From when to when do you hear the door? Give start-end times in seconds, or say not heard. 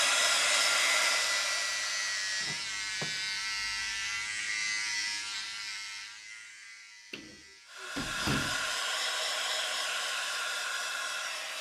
2.4-3.4, 7.1-8.7.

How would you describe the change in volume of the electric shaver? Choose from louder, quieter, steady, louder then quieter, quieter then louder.
quieter.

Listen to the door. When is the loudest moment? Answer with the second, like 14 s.
8 s.